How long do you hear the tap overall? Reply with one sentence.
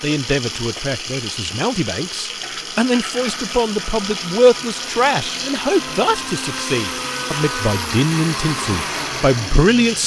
You can hear the tap for 10 seconds altogether.